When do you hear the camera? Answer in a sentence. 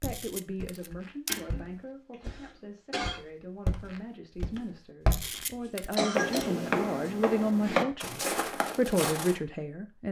You can hear the camera from 0.0 to 1.4 s and from 5.1 to 6.5 s.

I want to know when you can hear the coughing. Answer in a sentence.
The coughing can be heard from 1.2 to 3.2 s and from 5.5 to 7.1 s.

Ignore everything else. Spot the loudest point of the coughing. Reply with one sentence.
The loudest moment of the coughing is at 6 seconds.